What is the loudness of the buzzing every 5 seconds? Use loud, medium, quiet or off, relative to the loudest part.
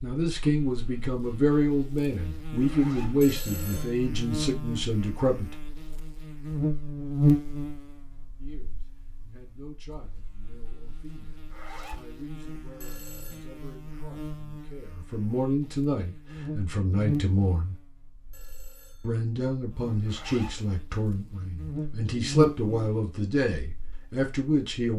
medium, loud, quiet, medium, medium.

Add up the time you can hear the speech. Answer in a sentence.
You can hear the speech for 21 seconds altogether.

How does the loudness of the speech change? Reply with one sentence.
The loudness of the speech goes down, then up.